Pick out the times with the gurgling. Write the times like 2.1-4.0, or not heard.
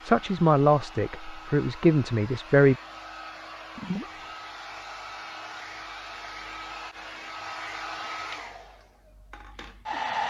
3.8-4.2.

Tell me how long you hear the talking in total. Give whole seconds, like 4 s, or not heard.
3 s.